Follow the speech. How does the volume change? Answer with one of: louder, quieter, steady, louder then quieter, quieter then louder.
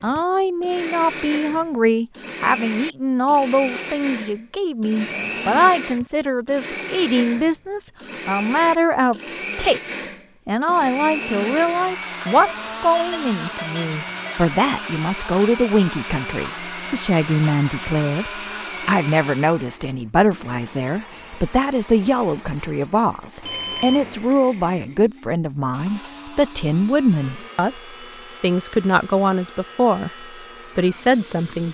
steady.